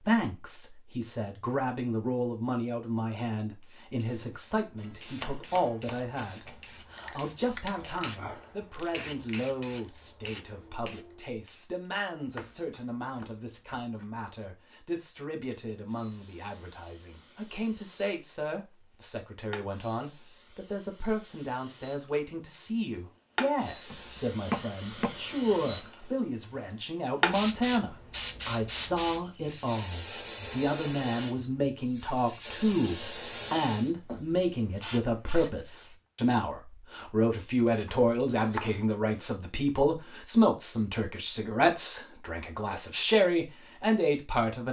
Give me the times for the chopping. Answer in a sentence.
The chopping can be heard from 4.8 to 6.6 s, from 12.2 to 14.1 s, from 23.9 to 25.9 s and from 37.9 to 39.2 s.